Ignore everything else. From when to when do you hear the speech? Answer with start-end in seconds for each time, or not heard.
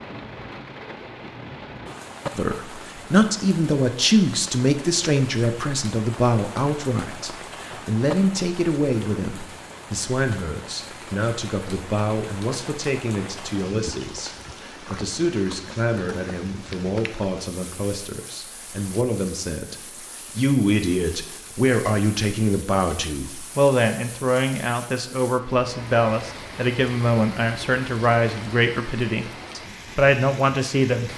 2.4-31.1.